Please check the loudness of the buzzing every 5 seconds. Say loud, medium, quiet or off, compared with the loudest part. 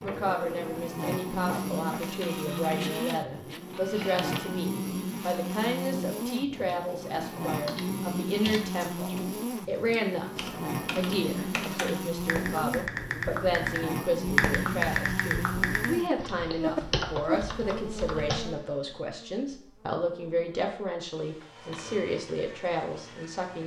loud, loud, loud, loud, quiet.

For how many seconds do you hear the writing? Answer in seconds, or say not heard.
not heard.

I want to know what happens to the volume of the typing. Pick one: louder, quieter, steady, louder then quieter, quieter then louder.
louder then quieter.